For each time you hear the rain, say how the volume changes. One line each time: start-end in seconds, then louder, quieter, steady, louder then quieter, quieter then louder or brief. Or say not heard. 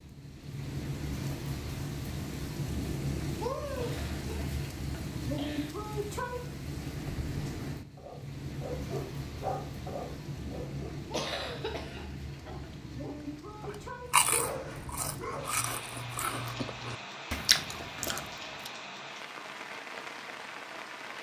0.0-21.1 quieter.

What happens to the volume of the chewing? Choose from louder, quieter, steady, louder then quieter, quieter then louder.
louder.